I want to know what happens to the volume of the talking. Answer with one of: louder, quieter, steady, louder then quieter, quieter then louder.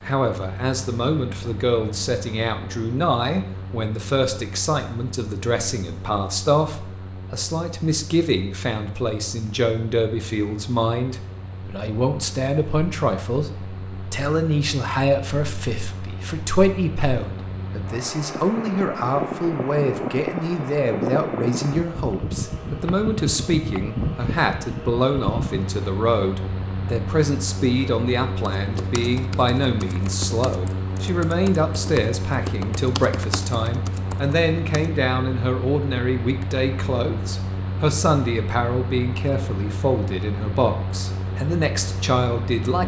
steady.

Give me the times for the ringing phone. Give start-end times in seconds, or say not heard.
not heard.